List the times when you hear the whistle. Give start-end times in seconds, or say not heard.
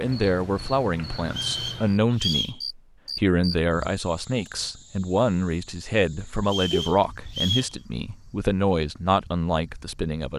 1.2-2.6, 6.5-7.8.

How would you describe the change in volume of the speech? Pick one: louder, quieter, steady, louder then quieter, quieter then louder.
steady.